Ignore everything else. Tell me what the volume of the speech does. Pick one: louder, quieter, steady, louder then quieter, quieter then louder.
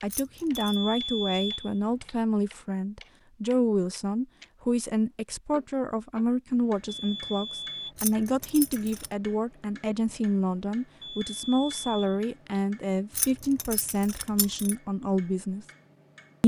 steady.